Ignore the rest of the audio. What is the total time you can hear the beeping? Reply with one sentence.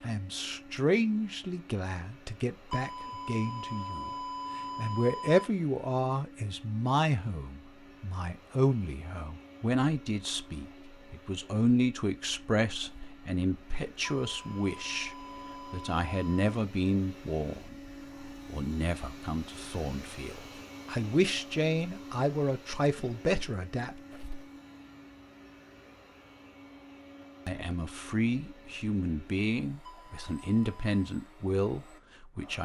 The beeping can be heard for 6 seconds in total.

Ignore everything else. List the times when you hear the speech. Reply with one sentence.
You can hear the speech from 0.0 to 4.1 s, from 4.8 to 24.0 s and from 27.4 to 32.6 s.